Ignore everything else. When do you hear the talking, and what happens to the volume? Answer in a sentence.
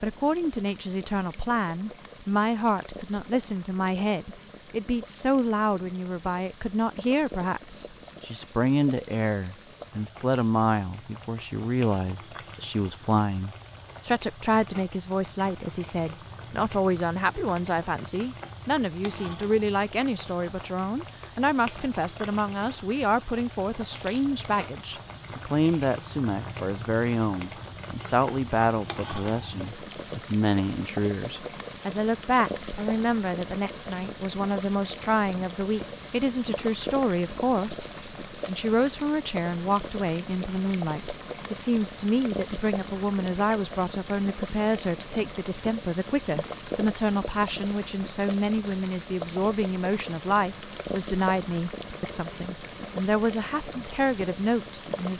The talking can be heard from 0.0 to 55.1 s, at a steady volume.